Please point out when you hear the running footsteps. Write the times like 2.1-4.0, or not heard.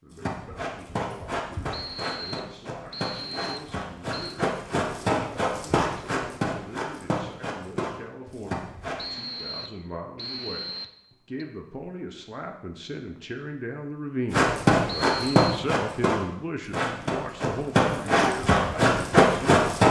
0.1-9.1, 14.3-19.8.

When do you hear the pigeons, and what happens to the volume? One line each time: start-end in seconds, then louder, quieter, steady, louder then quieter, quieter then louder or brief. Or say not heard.
not heard.